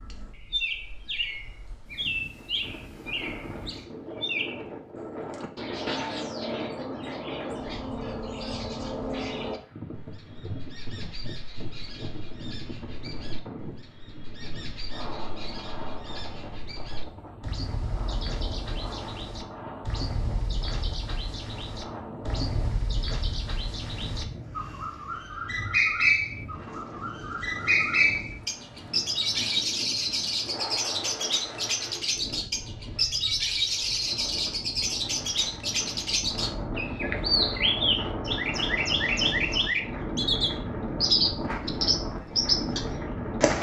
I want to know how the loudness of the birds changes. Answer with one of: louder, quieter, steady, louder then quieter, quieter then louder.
quieter then louder.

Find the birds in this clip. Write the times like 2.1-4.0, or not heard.
0.0-43.5.